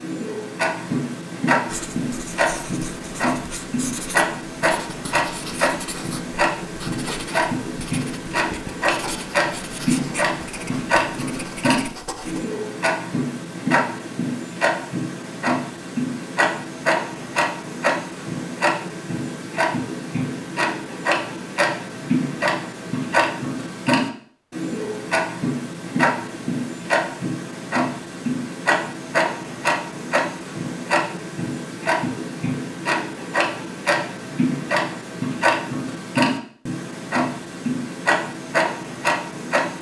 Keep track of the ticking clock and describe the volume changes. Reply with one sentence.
The loudness of the ticking clock stays about the same.